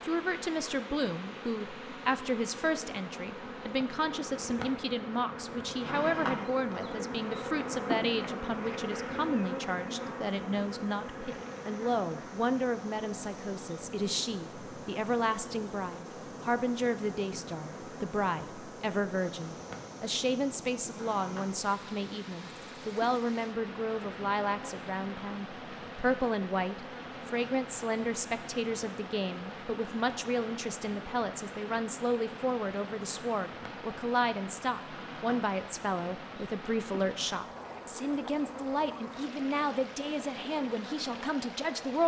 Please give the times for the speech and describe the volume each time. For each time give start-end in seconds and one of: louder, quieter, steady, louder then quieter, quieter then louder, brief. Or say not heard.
0.0-42.0 steady.